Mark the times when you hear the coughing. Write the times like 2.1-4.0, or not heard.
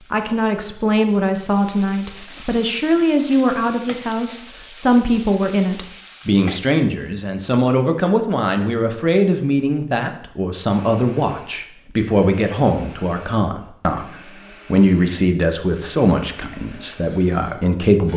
not heard.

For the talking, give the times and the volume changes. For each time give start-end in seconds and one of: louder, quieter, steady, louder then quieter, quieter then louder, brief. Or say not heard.
0.1-18.1 steady.